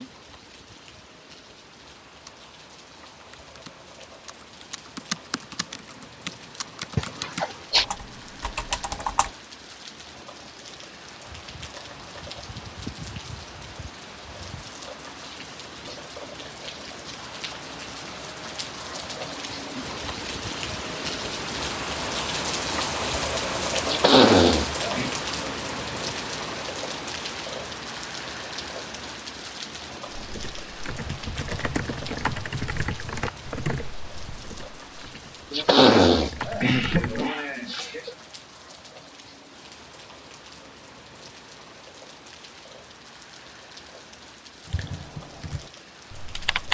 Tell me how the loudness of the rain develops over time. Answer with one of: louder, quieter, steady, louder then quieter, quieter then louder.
louder then quieter.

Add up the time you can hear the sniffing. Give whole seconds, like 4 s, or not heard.
5 s.